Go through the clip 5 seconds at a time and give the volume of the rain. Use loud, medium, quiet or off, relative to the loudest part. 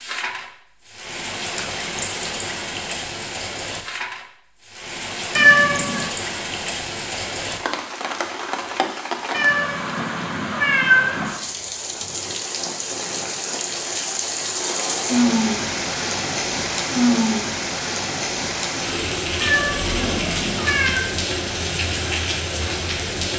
medium, medium, medium, loud, loud.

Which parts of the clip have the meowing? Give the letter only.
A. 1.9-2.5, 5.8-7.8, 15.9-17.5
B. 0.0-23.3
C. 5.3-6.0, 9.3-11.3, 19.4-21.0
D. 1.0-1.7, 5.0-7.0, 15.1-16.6
C.